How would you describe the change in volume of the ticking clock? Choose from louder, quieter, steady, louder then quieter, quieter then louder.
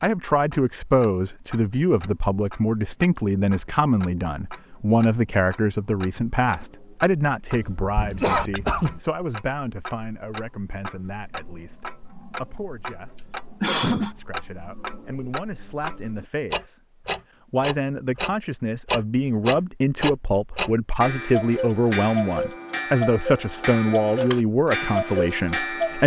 louder.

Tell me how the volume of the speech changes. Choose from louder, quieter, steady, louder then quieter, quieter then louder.
quieter then louder.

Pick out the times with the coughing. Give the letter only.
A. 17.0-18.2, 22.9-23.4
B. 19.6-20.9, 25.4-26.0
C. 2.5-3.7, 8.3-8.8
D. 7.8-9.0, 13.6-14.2
D.